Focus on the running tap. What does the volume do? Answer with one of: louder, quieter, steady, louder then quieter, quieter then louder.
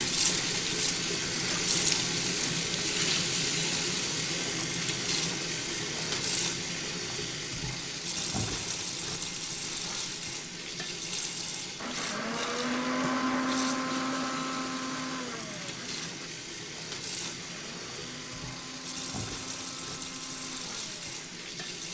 quieter.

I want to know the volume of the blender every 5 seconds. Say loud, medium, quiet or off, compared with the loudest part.
off, off, loud, quiet, quiet.